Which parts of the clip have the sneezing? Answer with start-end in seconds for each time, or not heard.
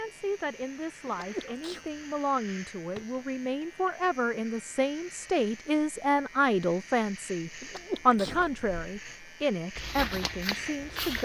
1.1-2.0, 7.6-9.2.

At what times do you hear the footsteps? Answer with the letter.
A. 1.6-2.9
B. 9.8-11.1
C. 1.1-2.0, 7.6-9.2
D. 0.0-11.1
B.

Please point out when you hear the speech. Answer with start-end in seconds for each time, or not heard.
0.0-11.1.